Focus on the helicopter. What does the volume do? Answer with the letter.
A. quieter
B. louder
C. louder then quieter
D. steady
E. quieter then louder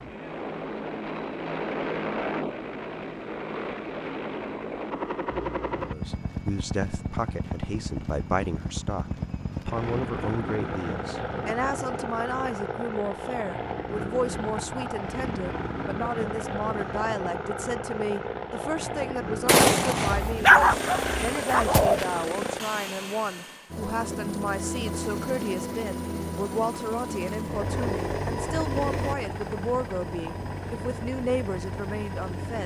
D.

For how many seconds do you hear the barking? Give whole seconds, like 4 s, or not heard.
2 s.